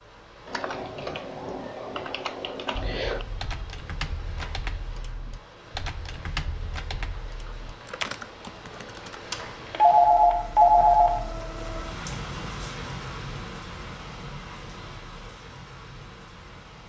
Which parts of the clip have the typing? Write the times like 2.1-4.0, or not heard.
0.5-9.2.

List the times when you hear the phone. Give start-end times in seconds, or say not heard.
2.8-3.7, 9.3-11.1.